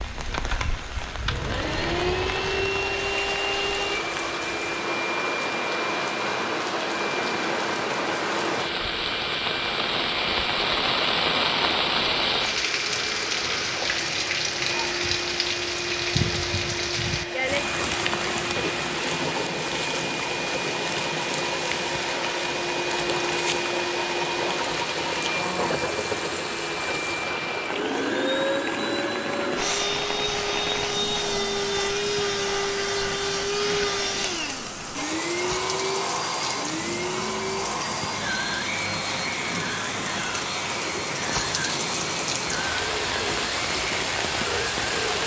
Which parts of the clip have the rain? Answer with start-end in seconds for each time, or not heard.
0.0-45.2.